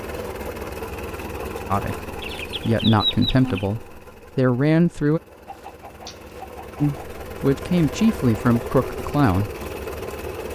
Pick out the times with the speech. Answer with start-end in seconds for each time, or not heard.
1.7-5.2, 6.8-9.5.